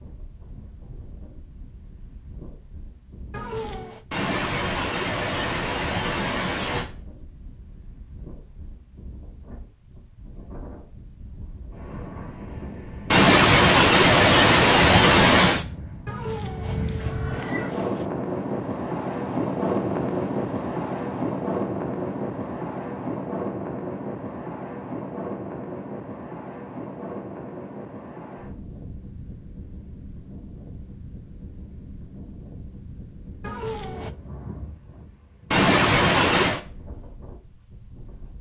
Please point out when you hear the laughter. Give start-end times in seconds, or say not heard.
4.1-6.8, 13.1-15.7, 35.5-36.6.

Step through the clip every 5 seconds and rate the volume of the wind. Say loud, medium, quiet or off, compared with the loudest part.
quiet, quiet, quiet, loud, loud, medium, quiet, quiet.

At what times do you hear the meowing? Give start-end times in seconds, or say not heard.
3.3-4.0, 16.1-18.1, 33.4-34.1.